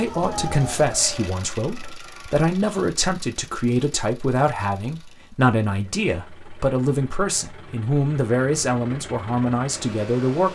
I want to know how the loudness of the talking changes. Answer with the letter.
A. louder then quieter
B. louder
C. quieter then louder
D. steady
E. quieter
D.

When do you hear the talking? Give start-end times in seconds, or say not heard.
0.0-10.4.